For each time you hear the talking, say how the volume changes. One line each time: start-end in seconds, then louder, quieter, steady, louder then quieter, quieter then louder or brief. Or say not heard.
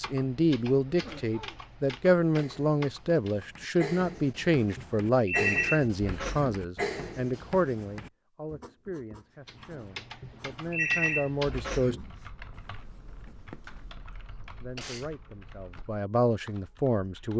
0.0-11.9 quieter
14.6-17.3 brief.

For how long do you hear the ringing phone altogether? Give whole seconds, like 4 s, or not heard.
4 s.